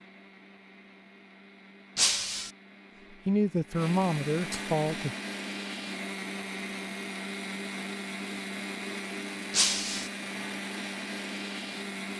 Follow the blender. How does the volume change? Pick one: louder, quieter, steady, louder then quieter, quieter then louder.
louder.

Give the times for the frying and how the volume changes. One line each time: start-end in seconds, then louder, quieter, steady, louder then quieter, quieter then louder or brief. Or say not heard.
not heard.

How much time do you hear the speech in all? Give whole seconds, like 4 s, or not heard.
2 s.